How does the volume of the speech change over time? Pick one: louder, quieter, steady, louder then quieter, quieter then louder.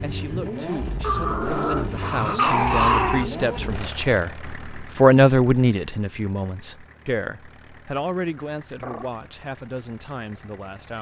louder then quieter.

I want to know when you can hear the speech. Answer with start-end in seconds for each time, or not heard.
0.0-10.9.